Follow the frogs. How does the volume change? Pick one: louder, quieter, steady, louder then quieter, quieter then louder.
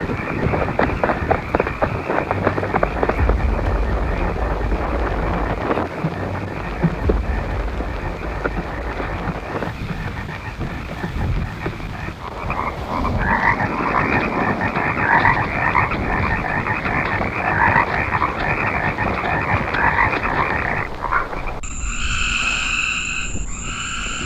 quieter then louder.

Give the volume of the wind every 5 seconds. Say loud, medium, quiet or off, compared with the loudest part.
loud, loud, loud, loud, medium.